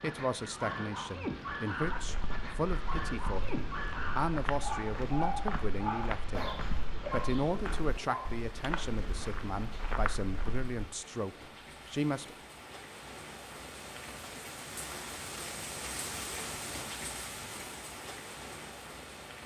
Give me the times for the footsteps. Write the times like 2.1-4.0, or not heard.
1.8-10.9.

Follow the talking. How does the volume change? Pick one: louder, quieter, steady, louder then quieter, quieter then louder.
steady.